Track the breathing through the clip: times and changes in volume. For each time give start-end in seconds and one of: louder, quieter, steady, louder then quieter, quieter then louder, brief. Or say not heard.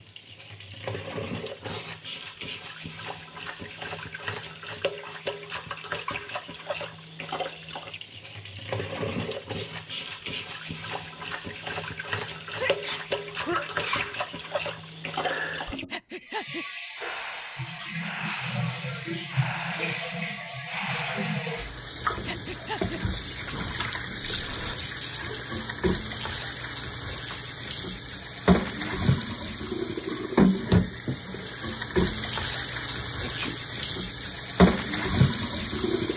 15.2-24.8 steady.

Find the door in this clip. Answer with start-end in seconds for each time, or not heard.
not heard.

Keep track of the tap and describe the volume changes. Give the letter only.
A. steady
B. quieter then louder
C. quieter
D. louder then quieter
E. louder
E.